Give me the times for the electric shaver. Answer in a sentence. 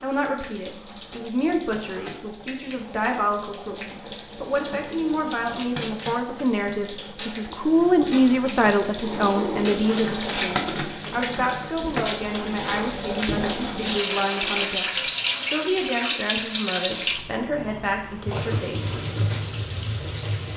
The electric shaver can't be heard in this clip.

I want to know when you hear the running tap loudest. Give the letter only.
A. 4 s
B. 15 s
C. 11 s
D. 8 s
B.